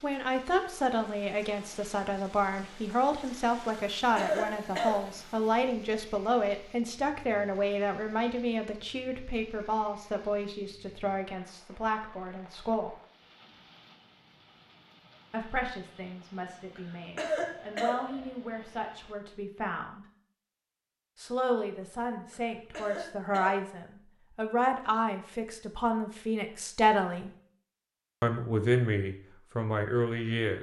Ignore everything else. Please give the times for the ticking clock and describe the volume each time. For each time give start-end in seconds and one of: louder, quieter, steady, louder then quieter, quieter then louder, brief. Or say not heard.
not heard.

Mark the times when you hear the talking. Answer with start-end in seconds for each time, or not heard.
0.0-12.9, 15.3-20.1, 21.1-27.3, 28.2-30.5.